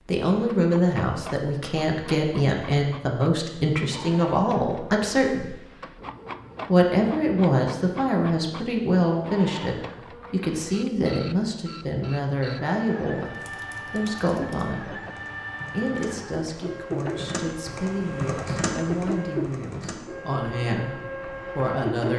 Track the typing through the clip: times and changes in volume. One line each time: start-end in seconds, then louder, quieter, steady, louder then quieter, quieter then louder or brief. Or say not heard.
13.2-20.1 louder.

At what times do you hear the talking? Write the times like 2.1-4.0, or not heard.
0.1-5.5, 6.7-15.0, 15.7-22.1.